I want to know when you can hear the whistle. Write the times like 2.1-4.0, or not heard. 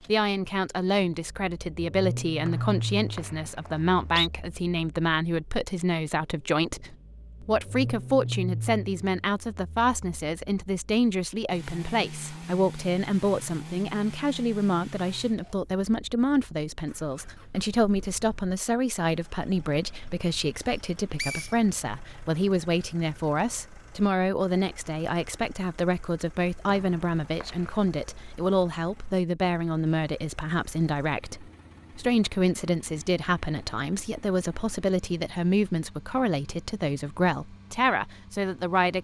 2.5-4.3, 21.1-21.6, 26.6-27.9.